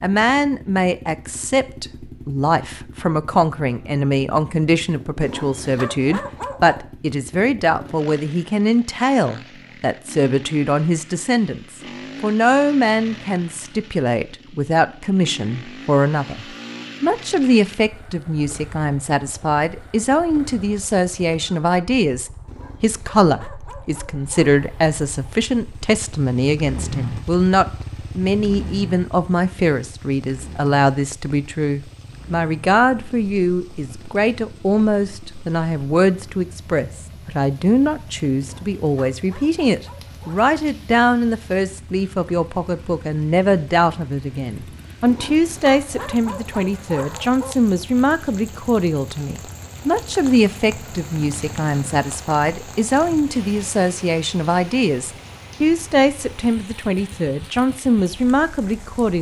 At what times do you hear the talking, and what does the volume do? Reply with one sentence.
You can hear the talking from 0.0 to 59.1 s, at a steady volume.